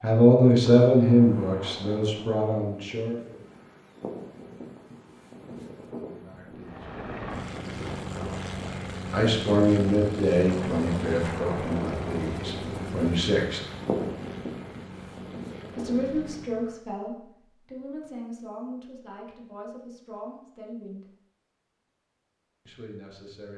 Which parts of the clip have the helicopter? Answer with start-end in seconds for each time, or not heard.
6.6-16.8.